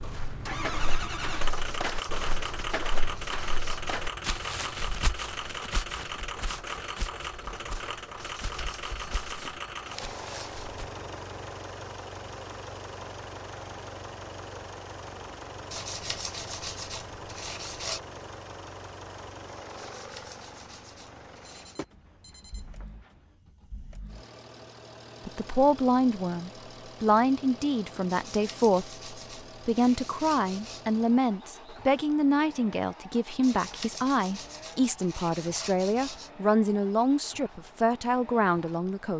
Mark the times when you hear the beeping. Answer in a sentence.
You can hear the beeping from 21.6 to 23.1 s.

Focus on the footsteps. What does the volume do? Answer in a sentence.
The volume of the footsteps goes down.